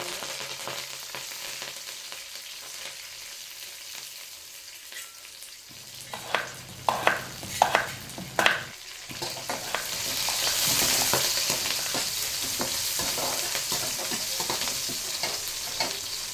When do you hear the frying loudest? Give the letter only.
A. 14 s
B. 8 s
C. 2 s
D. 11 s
D.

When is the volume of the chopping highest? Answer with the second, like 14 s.
8 s.